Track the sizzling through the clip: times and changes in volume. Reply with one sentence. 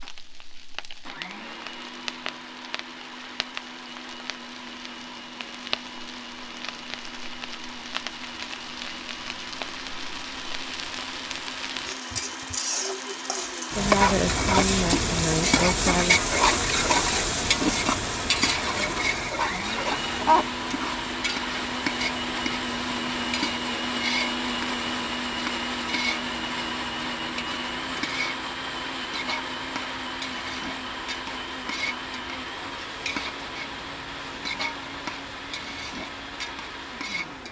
The sizzling can be heard from 0.0 to 37.4 s, getting louder then quieter.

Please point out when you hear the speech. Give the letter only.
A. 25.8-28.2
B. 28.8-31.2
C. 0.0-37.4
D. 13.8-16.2
D.